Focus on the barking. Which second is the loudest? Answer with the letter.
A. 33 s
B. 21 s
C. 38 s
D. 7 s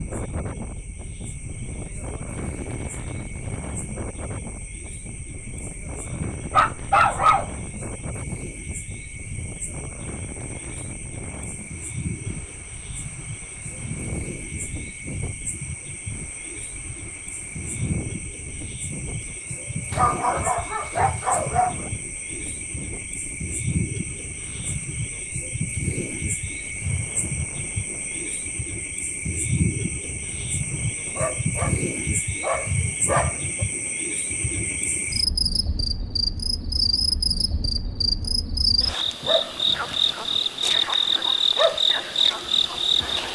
D.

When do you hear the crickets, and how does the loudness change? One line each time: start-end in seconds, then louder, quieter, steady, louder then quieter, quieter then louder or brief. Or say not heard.
0.0-43.3 louder.